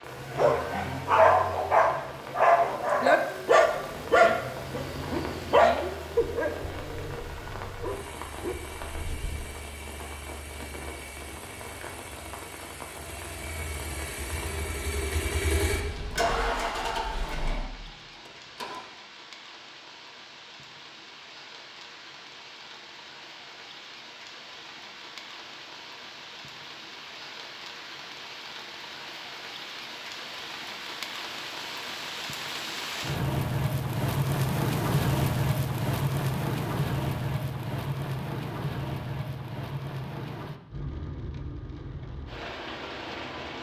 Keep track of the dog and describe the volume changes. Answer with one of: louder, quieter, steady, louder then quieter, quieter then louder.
quieter.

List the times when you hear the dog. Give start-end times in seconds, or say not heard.
0.2-9.5.